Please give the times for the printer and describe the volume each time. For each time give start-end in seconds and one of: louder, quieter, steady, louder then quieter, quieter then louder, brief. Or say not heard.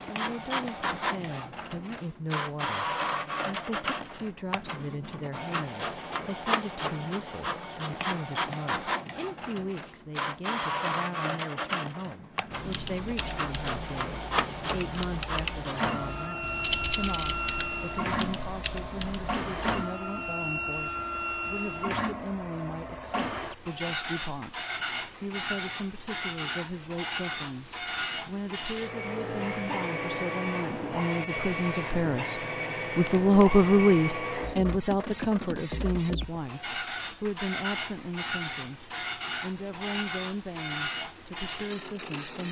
0.0-42.4 steady.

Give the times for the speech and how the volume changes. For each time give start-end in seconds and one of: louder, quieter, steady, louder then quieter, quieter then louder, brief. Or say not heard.
0.1-42.4 louder.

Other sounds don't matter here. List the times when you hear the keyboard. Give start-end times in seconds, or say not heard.
12.5-19.9.